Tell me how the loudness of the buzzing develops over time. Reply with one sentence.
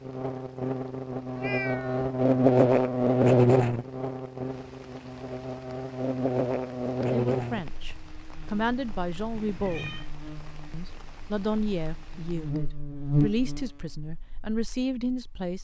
The loudness of the buzzing goes down, then up.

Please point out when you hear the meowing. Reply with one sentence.
The meowing can be heard from 1.4 to 2.1 s and from 9.3 to 10.1 s.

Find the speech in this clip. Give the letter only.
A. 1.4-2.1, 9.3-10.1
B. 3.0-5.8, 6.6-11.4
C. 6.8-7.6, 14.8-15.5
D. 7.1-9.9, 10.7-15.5
D.